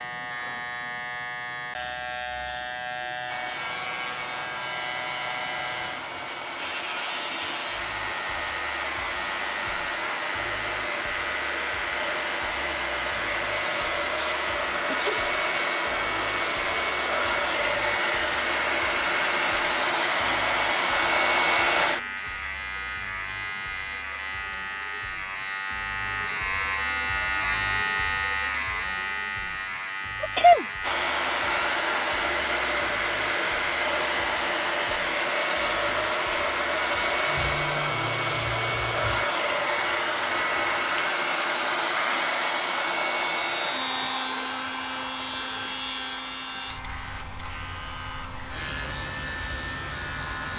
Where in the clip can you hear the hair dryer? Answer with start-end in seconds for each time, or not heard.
3.2-22.1, 30.8-50.5.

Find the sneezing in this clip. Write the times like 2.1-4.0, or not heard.
14.1-15.2, 30.2-30.6.